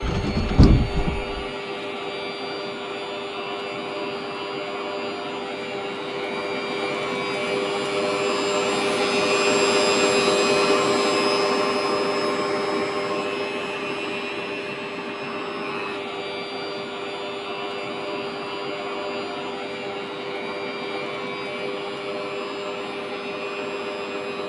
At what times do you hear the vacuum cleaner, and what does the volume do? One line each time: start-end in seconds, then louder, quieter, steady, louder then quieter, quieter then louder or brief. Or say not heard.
0.0-24.4 louder then quieter.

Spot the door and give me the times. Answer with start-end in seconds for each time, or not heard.
0.0-1.4.